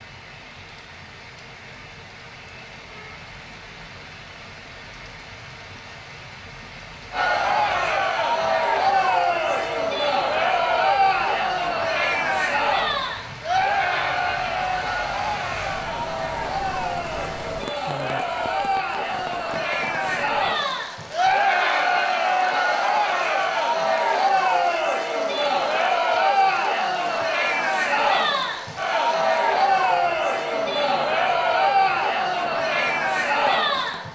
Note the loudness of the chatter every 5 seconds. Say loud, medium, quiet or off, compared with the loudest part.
off, loud, loud, medium, loud, loud, loud.